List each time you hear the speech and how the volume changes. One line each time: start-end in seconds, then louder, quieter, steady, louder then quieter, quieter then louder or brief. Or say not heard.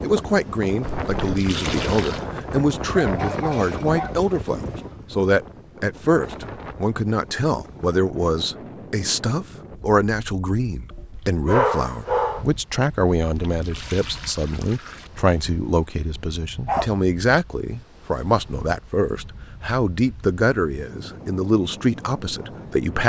0.0-23.0 steady.